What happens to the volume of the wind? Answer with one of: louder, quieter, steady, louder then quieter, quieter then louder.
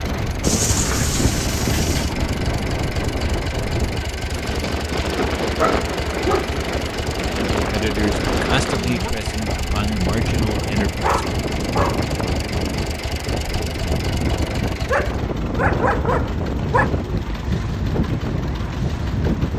steady.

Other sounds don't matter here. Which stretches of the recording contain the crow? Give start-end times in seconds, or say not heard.
not heard.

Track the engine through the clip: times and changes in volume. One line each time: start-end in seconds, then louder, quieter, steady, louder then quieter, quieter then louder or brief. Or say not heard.
0.0-19.5 steady.